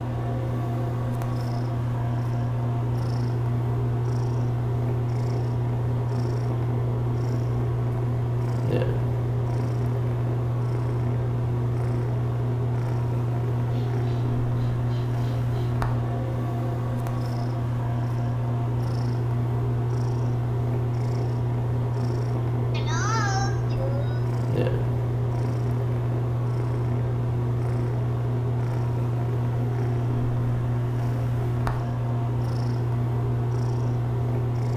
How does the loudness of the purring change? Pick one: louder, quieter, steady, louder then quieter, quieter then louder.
steady.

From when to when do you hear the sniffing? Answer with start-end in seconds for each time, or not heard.
13.7-15.7, 22.7-24.2.